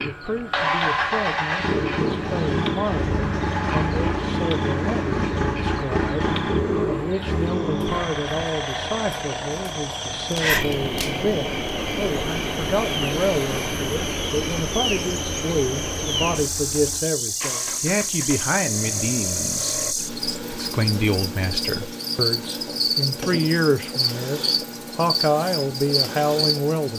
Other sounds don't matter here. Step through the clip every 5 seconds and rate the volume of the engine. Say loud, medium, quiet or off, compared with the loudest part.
loud, loud, medium, quiet, off, off.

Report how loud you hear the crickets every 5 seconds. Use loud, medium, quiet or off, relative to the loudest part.
medium, medium, loud, loud, loud, loud.